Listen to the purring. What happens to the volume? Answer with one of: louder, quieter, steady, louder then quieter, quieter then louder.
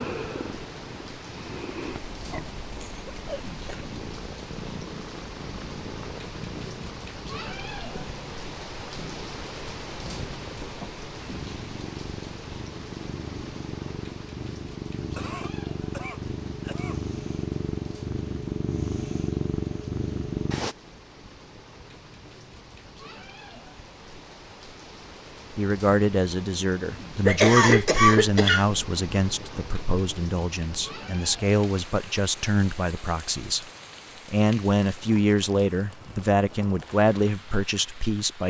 louder.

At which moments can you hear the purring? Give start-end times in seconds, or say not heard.
0.0-20.8.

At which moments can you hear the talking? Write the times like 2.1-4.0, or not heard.
25.5-33.6, 34.2-38.4.